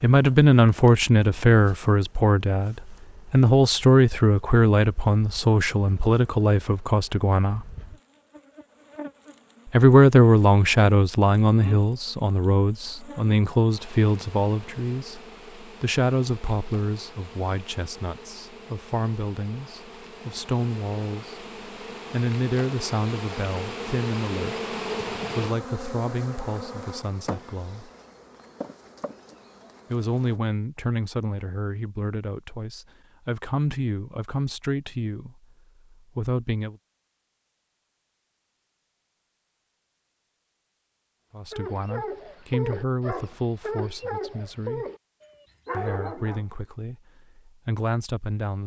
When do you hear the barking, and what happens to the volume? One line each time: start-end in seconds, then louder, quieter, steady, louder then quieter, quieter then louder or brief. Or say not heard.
41.5-46.5 steady.